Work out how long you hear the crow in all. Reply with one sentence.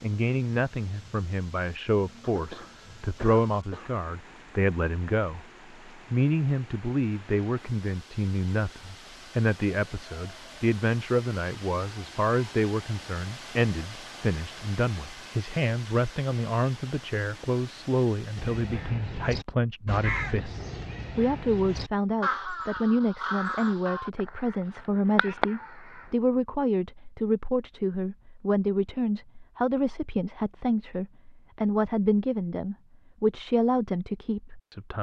You can hear the crow for 8 seconds altogether.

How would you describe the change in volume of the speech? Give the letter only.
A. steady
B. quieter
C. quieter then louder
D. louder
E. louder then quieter
A.